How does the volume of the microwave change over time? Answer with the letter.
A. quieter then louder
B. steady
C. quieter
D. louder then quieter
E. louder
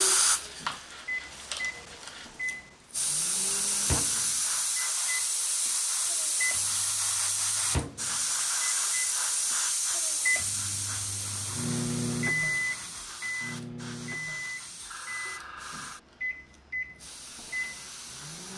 D.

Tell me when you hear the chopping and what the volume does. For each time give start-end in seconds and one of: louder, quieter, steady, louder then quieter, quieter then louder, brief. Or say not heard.
not heard.